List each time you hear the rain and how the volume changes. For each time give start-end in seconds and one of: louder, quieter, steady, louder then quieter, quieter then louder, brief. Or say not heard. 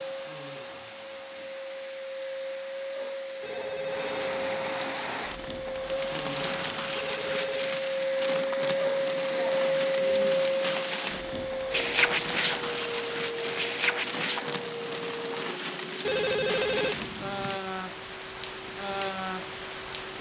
0.0-20.1 louder.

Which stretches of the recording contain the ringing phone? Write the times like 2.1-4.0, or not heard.
3.4-4.4, 7.0-7.7, 16.1-17.6.